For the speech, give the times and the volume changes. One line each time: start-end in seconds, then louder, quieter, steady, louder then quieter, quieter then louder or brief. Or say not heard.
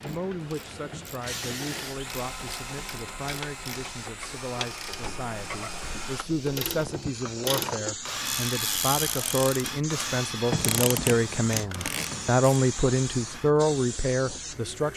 0.0-14.9 louder.